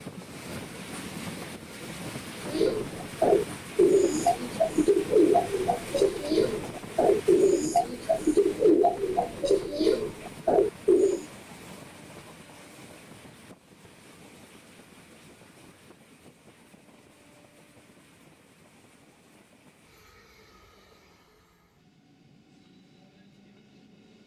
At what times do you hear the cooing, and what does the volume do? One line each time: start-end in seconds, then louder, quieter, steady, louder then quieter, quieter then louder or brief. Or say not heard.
2.5-11.2 steady.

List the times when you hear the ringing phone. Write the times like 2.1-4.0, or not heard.
not heard.